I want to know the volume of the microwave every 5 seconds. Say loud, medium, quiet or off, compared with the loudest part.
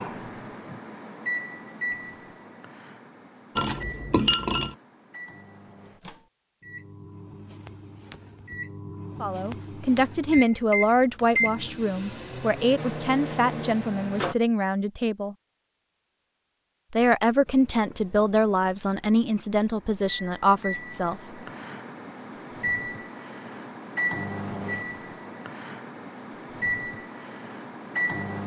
medium, medium, loud, quiet, loud, loud.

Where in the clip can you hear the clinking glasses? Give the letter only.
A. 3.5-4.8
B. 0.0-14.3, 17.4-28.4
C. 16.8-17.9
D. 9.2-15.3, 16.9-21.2
A.